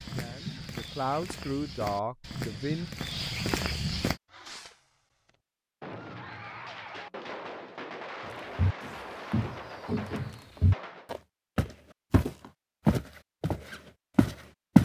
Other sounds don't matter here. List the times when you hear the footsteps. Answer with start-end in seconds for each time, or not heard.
0.0-4.2, 8.3-14.7.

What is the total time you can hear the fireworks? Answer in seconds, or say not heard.
7 s.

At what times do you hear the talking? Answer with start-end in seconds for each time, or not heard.
0.1-2.9.